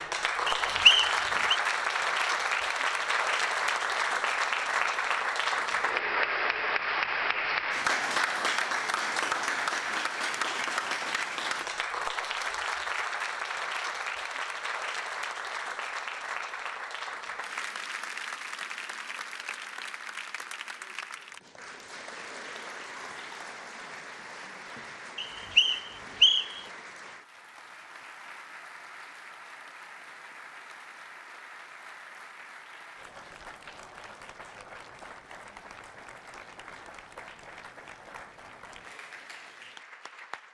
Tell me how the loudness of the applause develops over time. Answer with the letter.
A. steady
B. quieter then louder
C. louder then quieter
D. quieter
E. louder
D.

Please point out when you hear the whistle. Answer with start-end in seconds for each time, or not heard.
0.5-1.6, 25.1-26.6.